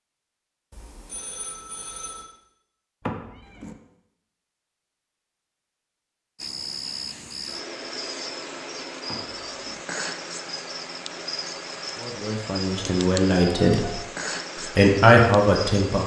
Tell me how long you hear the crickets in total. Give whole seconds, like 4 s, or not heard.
10 s.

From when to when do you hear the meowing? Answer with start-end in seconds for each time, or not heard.
3.0-3.8, 9.1-9.8.